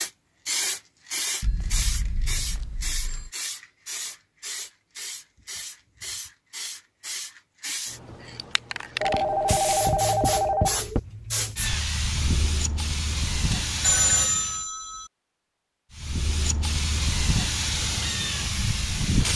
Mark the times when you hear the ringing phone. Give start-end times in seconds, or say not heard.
1.4-3.3, 9.0-11.0, 13.5-15.1.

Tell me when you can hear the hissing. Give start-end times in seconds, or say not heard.
0.0-14.7, 15.9-19.3.